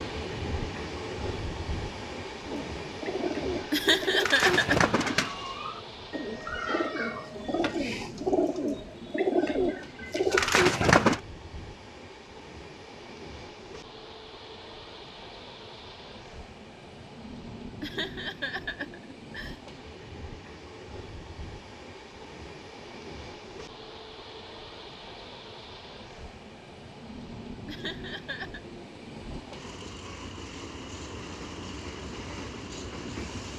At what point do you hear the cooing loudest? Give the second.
11 s.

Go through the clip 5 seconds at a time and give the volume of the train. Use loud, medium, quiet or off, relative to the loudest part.
loud, medium, medium, medium, medium, medium, loud.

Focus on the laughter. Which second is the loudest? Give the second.
4 s.